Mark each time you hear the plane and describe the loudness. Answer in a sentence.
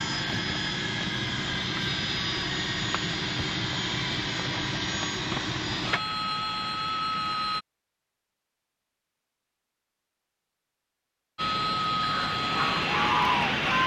The plane can be heard from 0.0 to 7.7 s, at a steady volume; and briefly from 11.3 to 13.8 s.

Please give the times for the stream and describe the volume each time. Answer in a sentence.
You can't hear the stream here.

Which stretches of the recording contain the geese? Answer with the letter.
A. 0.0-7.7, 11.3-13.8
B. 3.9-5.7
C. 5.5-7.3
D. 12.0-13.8
D.